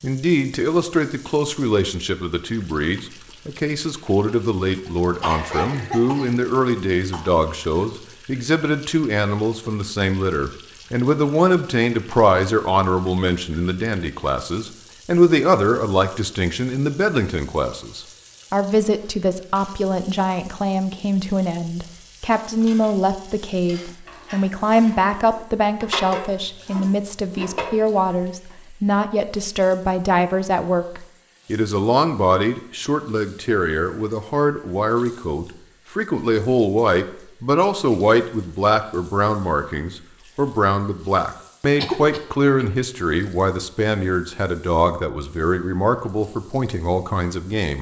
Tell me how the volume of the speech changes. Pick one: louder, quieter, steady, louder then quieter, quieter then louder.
steady.